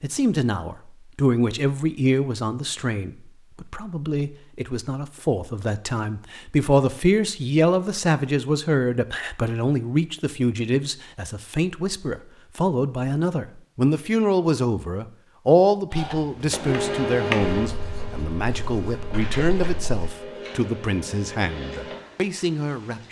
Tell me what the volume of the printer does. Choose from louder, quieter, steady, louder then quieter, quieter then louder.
quieter.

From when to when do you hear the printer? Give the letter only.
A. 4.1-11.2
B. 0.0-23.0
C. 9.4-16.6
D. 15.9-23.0
D.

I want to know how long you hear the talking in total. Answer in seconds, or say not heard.
23 s.